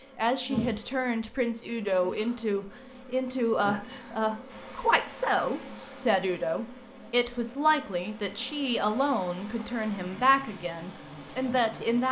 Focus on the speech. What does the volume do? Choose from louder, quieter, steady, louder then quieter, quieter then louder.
steady.